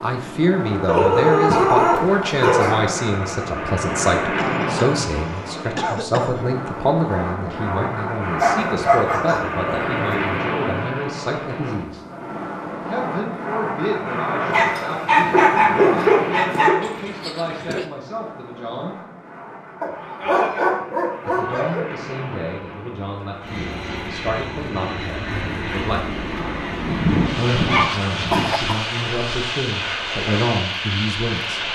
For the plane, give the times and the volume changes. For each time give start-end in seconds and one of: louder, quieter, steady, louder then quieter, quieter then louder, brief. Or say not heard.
0.0-31.7 quieter then louder.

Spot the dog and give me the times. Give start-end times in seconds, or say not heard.
0.8-2.8, 8.3-10.2, 14.4-16.8, 19.8-21.8, 26.9-28.6.